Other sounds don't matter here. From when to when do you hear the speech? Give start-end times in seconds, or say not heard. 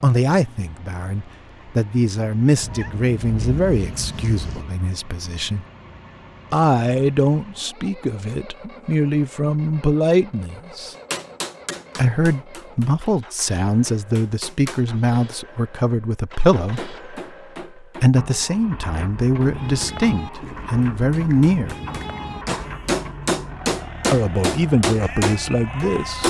0.0-5.7, 6.5-10.9, 11.9-16.9, 17.8-21.8, 24.1-26.2.